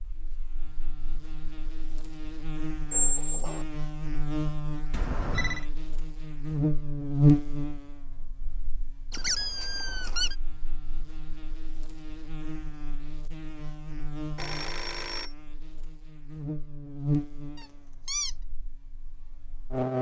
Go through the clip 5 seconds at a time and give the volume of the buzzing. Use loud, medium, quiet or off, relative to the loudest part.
medium, loud, quiet, medium.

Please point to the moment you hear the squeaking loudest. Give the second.
3 s.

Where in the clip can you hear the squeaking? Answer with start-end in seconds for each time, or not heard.
2.9-3.6, 9.1-10.3, 17.6-18.4.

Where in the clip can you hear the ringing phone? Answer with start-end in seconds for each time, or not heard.
4.9-5.7, 14.3-15.3.